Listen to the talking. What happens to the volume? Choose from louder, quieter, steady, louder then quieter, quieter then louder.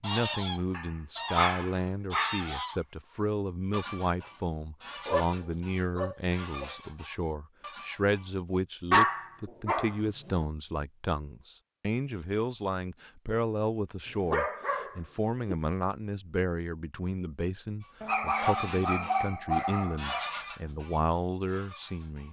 steady.